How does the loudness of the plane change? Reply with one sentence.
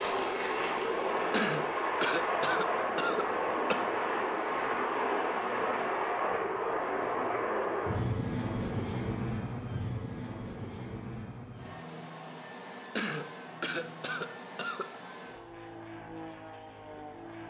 The volume of the plane goes down.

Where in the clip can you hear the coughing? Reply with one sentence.
The coughing can be heard from 1.3 to 3.9 s and from 12.9 to 14.9 s.